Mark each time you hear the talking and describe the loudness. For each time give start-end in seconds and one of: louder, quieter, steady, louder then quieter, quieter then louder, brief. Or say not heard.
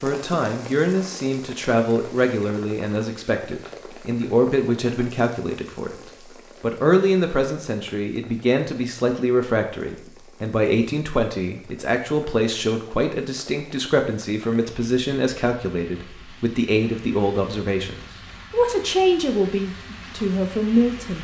0.0-21.1 steady.